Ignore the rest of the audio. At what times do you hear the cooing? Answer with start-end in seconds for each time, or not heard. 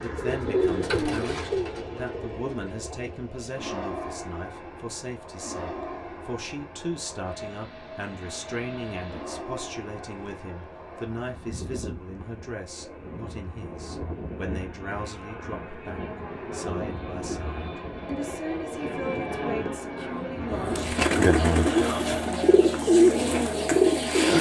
0.0-3.2, 20.4-24.3.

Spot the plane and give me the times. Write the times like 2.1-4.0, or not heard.
0.0-24.3.